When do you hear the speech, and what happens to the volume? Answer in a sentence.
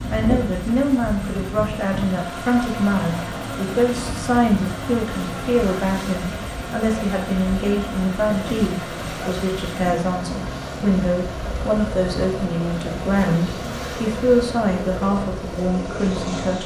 You can hear the speech from 0.1 to 16.6 s, at a steady volume.